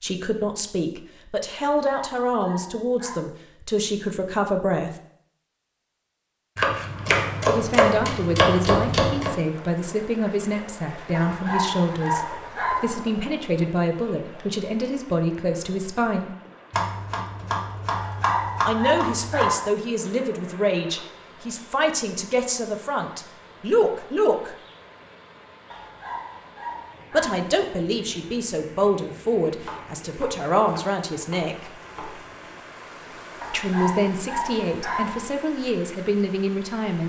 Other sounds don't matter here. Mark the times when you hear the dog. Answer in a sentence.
The dog can be heard from 1.6 to 3.2 s, from 11.1 to 13.0 s, from 17.9 to 19.7 s, from 25.7 to 27.6 s and from 33.4 to 35.3 s.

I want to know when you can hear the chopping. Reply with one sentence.
You can hear the chopping from 6.5 to 9.3 s, from 16.7 to 19.5 s and from 29.6 to 32.4 s.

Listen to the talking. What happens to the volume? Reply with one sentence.
The loudness of the talking stays about the same.